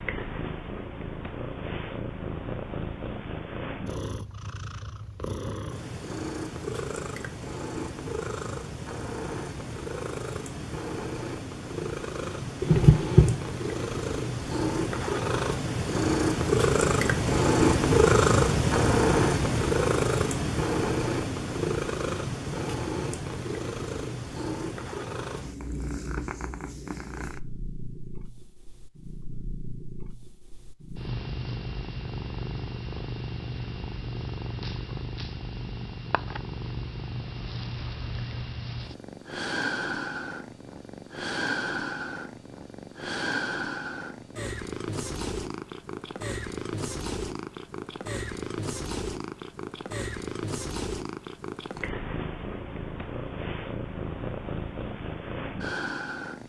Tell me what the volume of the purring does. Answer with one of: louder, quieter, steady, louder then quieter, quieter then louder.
louder then quieter.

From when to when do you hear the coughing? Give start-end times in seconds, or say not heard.
12.6-13.3.